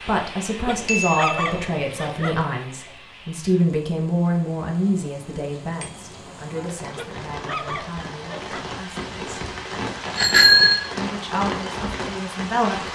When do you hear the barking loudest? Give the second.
1 s.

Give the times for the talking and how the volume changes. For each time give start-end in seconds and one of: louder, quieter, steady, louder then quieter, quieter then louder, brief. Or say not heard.
0.0-9.4 quieter
10.9-12.9 brief.